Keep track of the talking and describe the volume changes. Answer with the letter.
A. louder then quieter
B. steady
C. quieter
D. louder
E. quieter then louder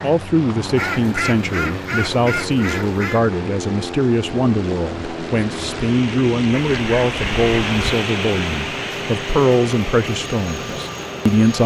B.